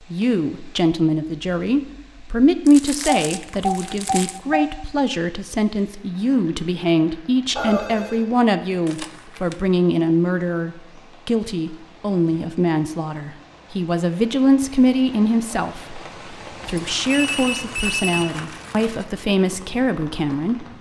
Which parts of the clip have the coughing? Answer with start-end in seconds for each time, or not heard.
not heard.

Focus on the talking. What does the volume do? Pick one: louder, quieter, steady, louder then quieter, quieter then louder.
steady.